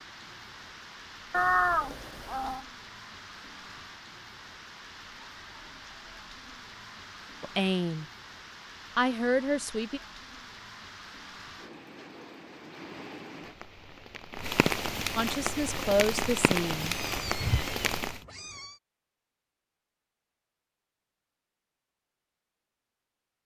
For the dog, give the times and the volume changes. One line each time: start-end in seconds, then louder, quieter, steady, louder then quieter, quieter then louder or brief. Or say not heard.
not heard.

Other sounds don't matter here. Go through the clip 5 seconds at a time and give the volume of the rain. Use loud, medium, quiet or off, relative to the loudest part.
quiet, quiet, medium, loud, off.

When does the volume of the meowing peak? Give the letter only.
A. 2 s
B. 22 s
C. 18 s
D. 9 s
A.